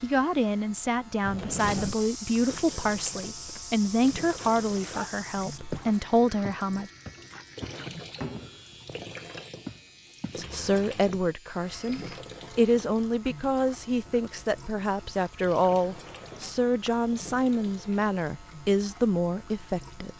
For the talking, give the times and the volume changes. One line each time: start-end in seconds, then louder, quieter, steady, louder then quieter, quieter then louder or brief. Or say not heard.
0.0-6.9 steady
10.3-20.1 steady.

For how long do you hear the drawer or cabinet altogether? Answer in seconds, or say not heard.
3 s.